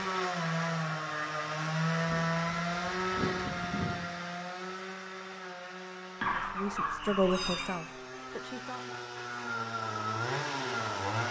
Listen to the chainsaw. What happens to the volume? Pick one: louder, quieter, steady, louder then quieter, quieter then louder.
quieter then louder.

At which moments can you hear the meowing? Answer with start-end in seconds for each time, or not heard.
7.2-8.0.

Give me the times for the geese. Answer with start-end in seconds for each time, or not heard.
2.0-3.9, 6.2-7.8.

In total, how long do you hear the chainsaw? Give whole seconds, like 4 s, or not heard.
11 s.